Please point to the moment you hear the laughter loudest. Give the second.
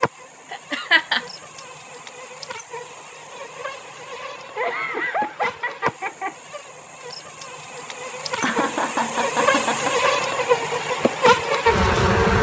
1 s.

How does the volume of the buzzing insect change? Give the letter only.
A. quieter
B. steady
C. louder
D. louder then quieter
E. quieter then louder
C.